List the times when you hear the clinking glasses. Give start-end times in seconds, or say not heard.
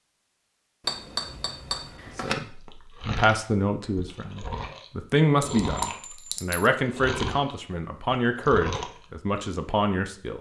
0.8-2.4, 5.4-6.7.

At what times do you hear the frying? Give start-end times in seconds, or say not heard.
not heard.